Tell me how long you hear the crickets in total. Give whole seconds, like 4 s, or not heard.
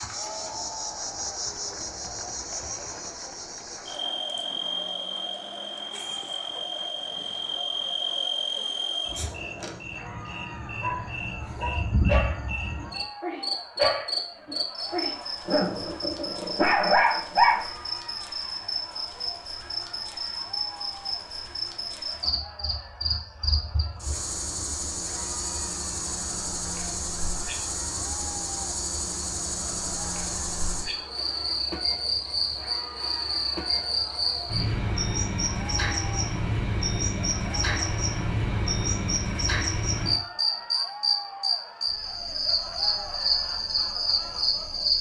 45 s.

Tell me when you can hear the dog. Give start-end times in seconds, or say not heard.
10.7-17.6.